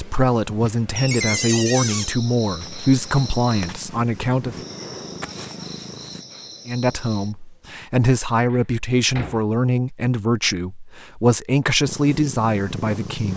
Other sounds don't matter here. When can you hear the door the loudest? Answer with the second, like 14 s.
1 s.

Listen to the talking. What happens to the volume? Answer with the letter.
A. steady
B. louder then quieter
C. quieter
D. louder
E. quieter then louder
A.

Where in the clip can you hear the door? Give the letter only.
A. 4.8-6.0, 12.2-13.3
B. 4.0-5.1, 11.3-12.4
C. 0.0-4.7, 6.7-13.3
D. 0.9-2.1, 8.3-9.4
D.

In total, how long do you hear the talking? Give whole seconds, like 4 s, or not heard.
11 s.